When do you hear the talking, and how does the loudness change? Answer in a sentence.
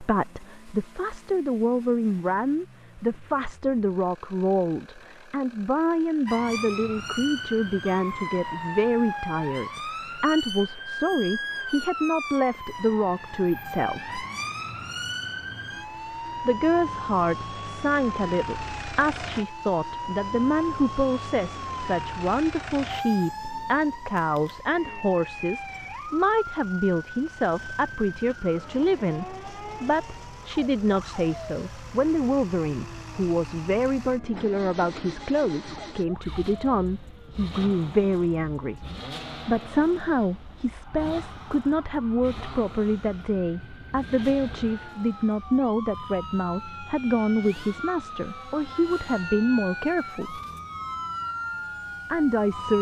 The talking can be heard from 0.0 to 14.2 s, at a steady volume; from 16.4 to 38.9 s, at a steady volume; from 39.5 to 50.4 s, at a steady volume; and briefly from 52.1 to 52.7 s.